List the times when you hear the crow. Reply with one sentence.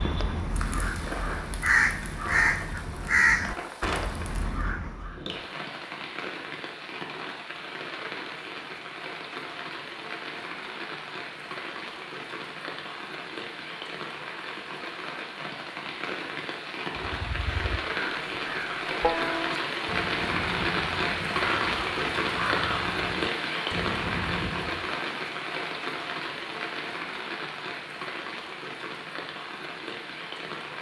You can hear the crow from 0.0 to 5.2 s and from 16.9 to 24.9 s.